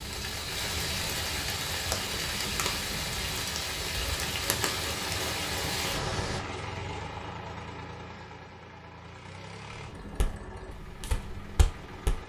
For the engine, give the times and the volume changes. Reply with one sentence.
The engine can be heard from 0.0 to 12.2 s, getting louder then quieter.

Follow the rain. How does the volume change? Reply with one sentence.
The volume of the rain stays about the same.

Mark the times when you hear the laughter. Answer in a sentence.
You can't hear the laughter here.